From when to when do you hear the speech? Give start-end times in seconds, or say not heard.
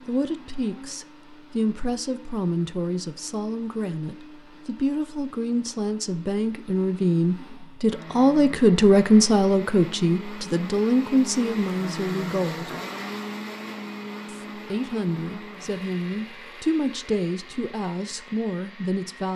0.1-12.8, 14.3-19.3.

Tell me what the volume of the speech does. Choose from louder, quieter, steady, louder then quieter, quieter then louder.
louder then quieter.